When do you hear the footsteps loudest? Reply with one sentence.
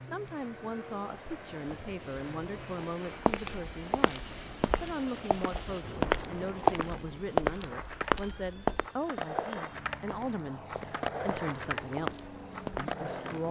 The volume of the footsteps peaks at 7 seconds.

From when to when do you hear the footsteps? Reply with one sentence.
The footsteps can be heard from 3.2 to 12.9 s.